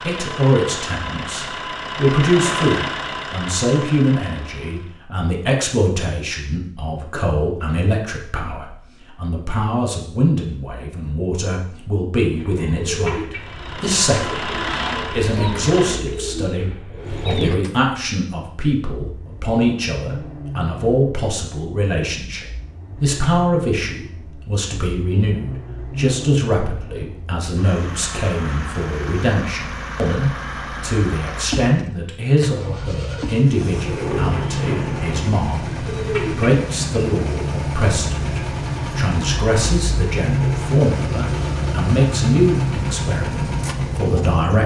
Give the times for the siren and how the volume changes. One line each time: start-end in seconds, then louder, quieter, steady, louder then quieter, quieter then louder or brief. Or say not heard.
not heard.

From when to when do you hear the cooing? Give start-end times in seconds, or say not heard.
12.3-17.7, 33.8-36.5.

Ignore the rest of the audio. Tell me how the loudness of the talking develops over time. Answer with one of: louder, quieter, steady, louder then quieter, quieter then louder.
steady.